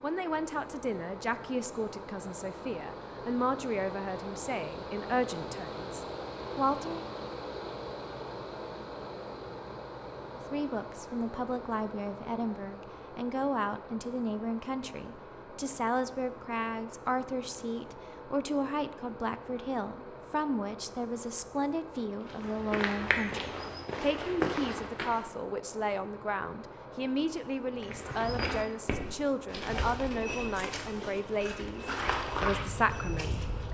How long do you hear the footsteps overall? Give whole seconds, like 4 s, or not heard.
9 s.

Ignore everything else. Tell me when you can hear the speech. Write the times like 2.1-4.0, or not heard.
0.0-7.0, 10.3-33.6.